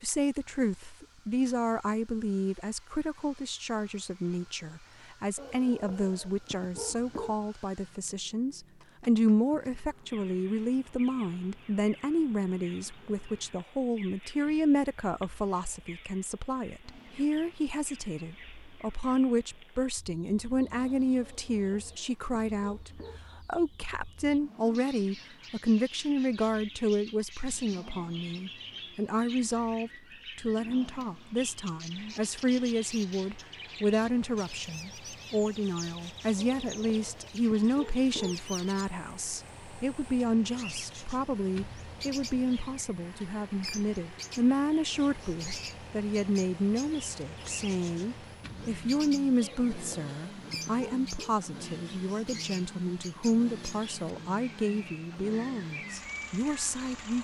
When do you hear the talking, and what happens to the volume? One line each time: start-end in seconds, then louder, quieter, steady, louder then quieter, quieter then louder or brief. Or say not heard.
0.0-57.1 steady.